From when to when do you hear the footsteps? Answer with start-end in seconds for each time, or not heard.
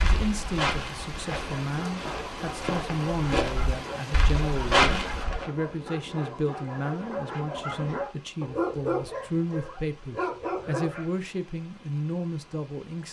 0.0-5.5.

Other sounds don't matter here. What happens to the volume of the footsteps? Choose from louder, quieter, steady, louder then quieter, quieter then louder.
quieter then louder.